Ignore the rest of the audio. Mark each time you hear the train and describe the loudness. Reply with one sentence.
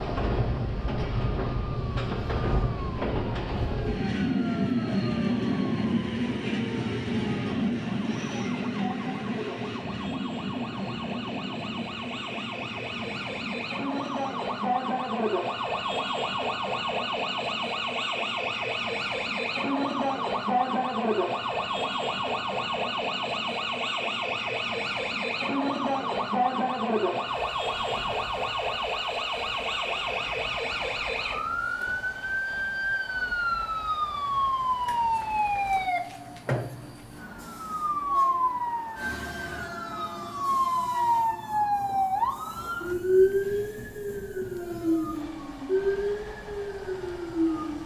You can hear the train from 0.0 to 47.8 s, getting quieter.